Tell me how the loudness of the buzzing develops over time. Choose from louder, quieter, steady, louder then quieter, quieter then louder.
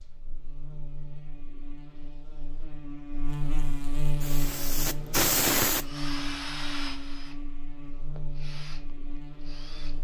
louder then quieter.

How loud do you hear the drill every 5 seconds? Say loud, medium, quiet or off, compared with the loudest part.
off, loud.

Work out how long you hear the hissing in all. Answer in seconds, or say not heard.
2 s.